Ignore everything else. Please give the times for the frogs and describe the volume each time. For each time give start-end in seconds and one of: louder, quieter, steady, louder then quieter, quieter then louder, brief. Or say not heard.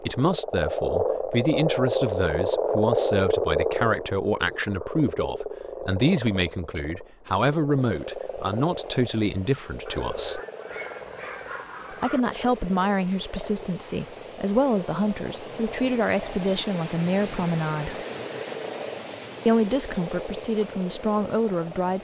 0.0-21.9 quieter.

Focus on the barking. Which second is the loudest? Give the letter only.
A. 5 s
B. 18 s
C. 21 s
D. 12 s
D.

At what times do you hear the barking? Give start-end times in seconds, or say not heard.
10.7-12.2.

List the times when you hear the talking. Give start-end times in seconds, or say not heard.
0.0-10.4, 11.9-18.0, 19.4-21.9.